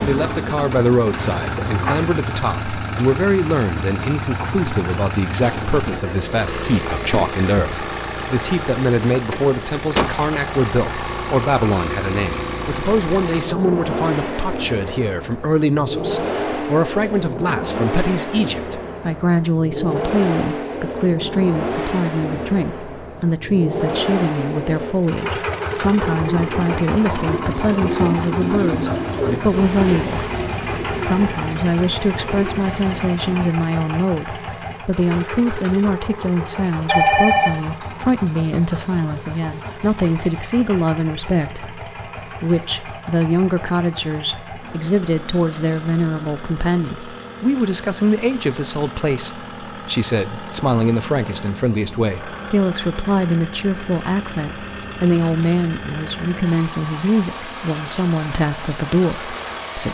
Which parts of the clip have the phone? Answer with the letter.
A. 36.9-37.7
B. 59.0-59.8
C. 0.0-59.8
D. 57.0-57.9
A.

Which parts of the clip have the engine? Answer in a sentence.
The engine can be heard from 0.0 to 59.8 s.